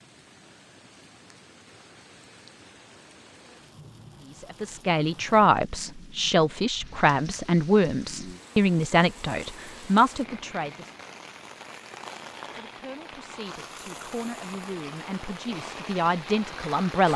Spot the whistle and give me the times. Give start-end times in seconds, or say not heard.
not heard.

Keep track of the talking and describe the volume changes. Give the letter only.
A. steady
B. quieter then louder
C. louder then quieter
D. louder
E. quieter
B.